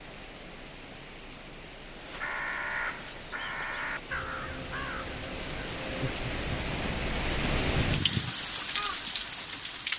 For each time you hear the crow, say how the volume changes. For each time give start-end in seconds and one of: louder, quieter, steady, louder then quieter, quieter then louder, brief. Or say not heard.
1.9-9.0 quieter then louder.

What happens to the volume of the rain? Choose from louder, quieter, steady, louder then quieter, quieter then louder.
louder.